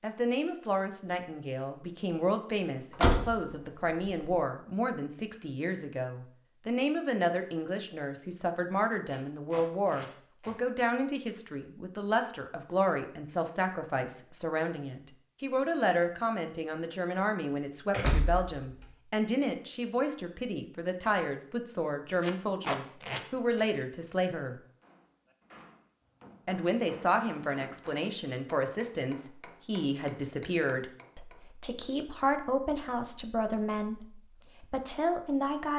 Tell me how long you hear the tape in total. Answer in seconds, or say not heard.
3 s.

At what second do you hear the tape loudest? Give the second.
23 s.